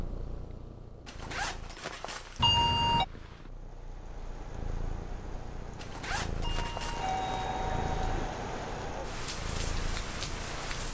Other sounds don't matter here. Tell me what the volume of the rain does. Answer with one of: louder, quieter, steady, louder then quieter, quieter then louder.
louder.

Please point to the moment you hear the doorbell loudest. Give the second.
3 s.